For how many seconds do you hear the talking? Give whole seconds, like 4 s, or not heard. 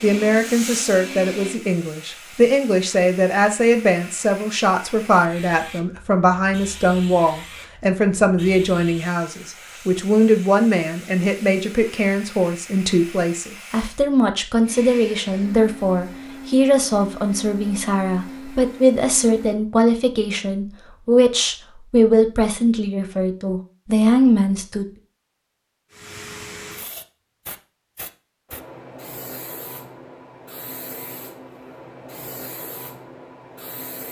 25 s.